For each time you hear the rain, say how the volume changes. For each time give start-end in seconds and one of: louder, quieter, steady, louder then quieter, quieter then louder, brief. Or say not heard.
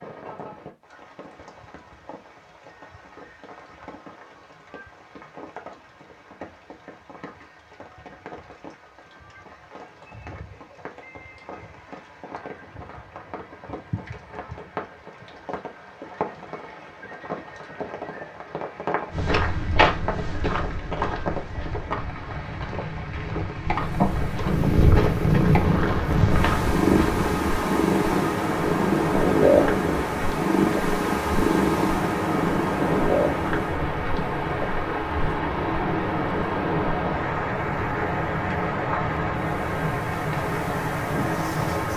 0.0-41.9 louder.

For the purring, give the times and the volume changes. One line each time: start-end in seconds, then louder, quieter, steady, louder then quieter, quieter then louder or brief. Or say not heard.
23.8-41.9 quieter.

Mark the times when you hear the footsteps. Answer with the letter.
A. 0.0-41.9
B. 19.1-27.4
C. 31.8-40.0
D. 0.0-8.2
B.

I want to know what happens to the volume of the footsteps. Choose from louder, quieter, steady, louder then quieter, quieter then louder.
quieter then louder.